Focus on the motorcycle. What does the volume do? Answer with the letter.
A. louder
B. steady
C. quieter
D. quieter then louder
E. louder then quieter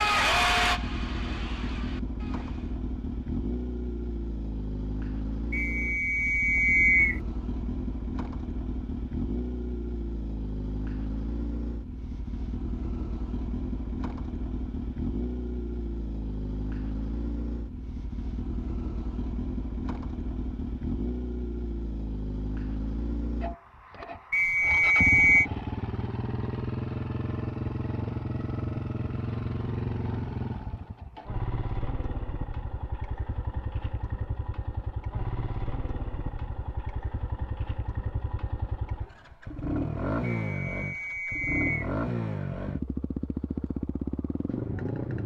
B.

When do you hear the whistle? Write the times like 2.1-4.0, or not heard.
5.5-7.2, 24.3-25.5, 40.2-41.9.